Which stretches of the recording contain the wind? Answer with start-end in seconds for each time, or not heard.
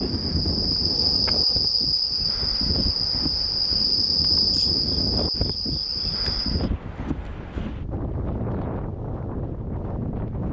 0.0-10.4.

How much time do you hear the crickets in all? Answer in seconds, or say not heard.
7 s.